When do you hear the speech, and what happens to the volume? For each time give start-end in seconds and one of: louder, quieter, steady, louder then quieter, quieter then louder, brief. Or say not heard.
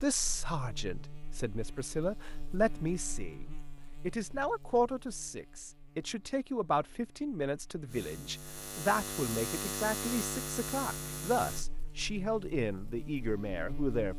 0.0-14.1 steady.